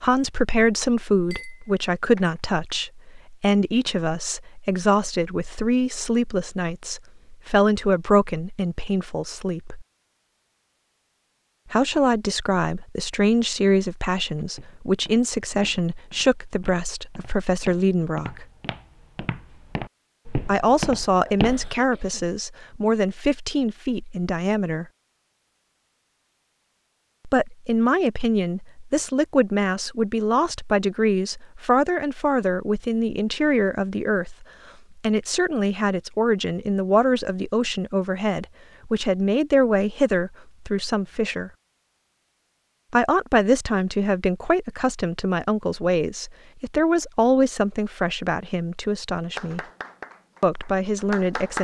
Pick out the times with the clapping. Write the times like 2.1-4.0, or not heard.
49.4-51.5.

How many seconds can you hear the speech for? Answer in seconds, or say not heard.
43 s.